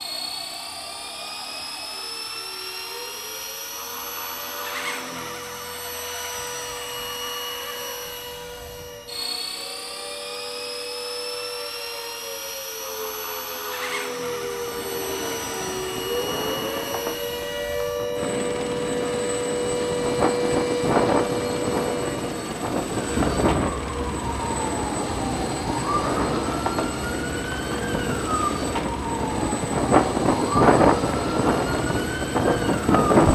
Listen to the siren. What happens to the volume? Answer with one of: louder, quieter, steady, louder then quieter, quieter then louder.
louder.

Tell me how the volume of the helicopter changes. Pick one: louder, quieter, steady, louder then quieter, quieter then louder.
steady.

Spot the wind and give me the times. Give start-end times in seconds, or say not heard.
14.4-33.3.